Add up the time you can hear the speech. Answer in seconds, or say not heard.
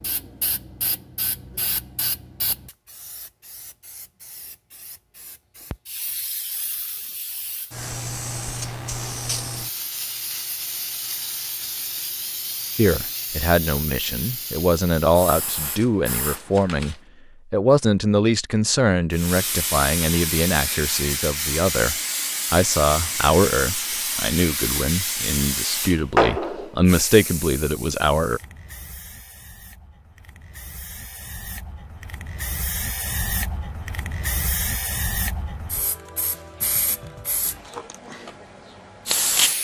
16 s.